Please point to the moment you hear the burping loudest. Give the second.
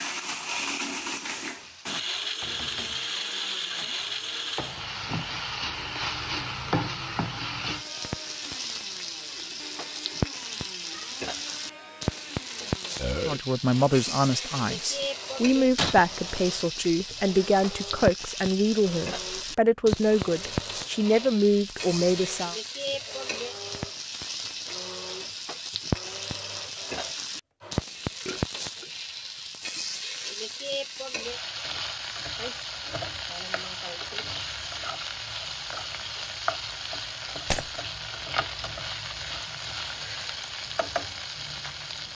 13 s.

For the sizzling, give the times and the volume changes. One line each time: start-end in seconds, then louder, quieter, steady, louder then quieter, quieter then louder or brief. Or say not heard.
0.2-42.0 steady.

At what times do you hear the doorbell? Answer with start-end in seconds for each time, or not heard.
not heard.